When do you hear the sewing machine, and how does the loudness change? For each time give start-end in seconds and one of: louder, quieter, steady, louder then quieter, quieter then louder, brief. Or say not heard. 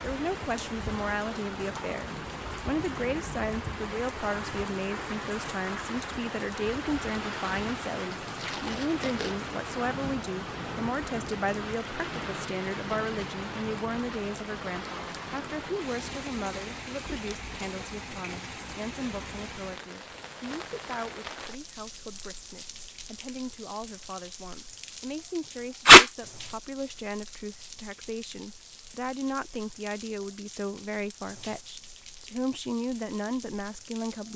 not heard.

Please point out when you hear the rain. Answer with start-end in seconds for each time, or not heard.
0.0-34.3.